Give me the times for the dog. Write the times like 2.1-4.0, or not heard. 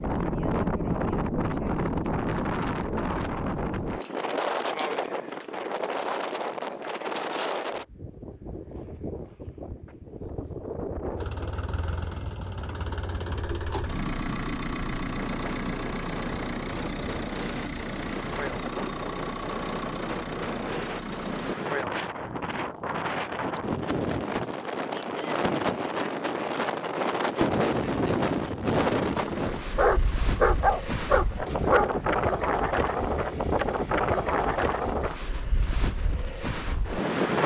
29.2-31.9.